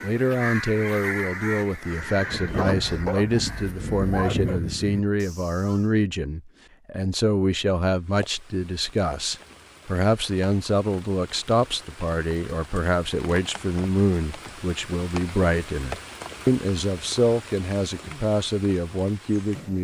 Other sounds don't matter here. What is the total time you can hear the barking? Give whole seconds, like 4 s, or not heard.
2 s.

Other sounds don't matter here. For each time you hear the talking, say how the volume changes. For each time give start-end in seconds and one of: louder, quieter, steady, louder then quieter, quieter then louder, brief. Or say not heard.
0.0-19.7 steady.